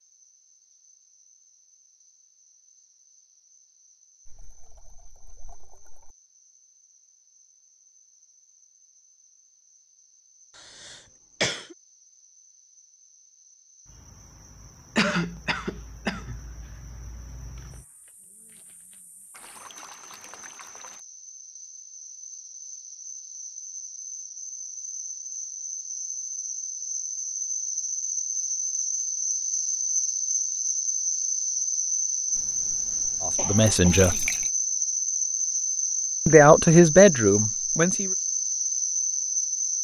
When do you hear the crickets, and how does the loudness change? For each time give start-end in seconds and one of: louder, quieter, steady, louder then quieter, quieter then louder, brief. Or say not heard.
0.0-39.7 louder.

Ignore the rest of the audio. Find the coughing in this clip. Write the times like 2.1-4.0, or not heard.
10.6-11.8, 14.9-16.4, 33.4-34.4.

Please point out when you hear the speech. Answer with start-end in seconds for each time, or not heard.
33.2-34.3, 36.2-38.1.